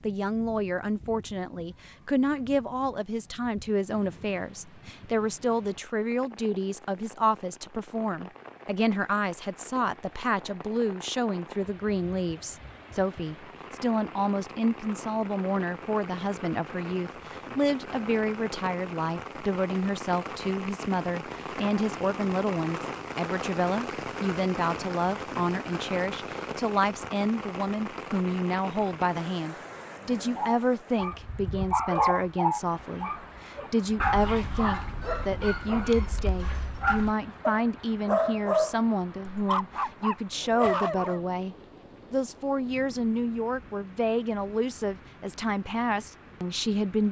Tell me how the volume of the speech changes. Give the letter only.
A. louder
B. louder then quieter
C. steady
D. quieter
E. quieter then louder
C.